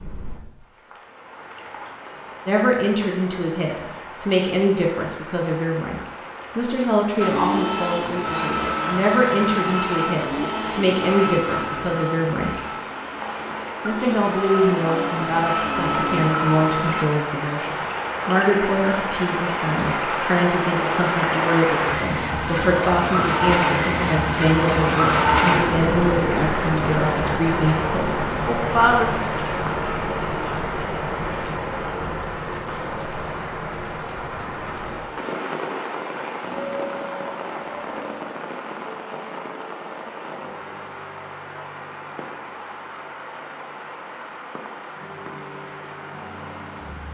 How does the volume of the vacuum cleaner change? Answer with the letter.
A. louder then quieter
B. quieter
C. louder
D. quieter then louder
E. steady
D.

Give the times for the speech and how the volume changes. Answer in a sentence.
You can hear the speech from 2.5 to 12.6 s, at a steady volume; and from 13.8 to 29.1 s, at a steady volume.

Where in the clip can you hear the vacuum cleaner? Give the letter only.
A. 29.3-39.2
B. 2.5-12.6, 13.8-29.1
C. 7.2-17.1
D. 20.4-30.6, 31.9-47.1
C.